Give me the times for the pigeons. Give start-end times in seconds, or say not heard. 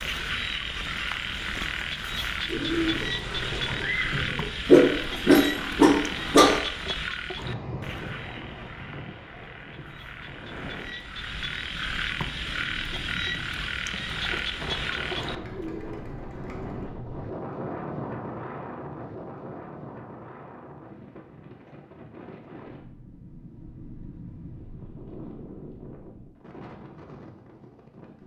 2.5-4.5, 15.2-16.9.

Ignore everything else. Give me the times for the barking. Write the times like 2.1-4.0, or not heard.
4.7-6.6.